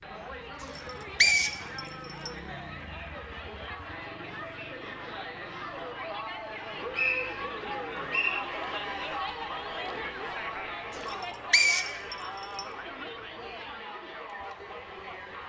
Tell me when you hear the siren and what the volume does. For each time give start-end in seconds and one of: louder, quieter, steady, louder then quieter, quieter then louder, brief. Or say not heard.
not heard.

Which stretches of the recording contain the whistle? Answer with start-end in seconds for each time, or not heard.
0.8-2.3, 6.5-8.4, 11.5-12.7.